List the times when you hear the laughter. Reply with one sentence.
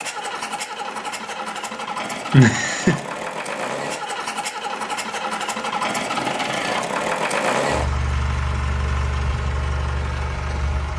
The laughter can be heard from 2.3 to 3.0 s.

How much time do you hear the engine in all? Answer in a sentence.
The engine can be heard for 11 seconds in total.